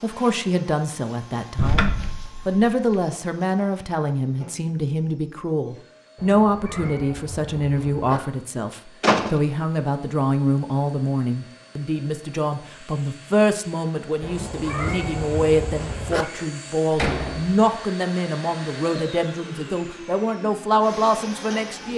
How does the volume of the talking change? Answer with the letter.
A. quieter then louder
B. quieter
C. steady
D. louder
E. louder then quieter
C.